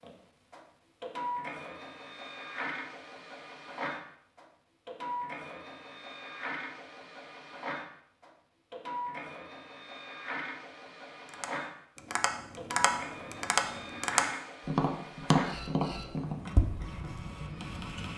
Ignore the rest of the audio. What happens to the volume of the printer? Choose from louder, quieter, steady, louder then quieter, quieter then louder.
steady.